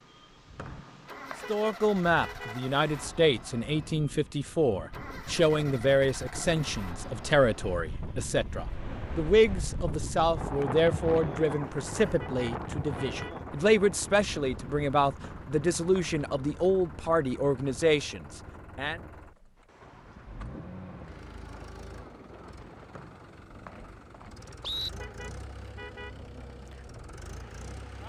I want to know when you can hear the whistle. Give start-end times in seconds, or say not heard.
0.6-1.4, 15.2-16.1, 22.9-24.9.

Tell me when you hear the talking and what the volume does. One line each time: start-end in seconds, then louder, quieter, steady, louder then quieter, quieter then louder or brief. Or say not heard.
1.4-19.0 steady.